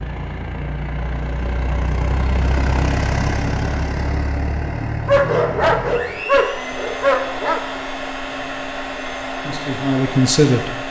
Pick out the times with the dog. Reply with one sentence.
The dog can be heard from 5.0 to 7.6 s.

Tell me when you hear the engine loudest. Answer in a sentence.
The volume of the engine peaks at 3 seconds.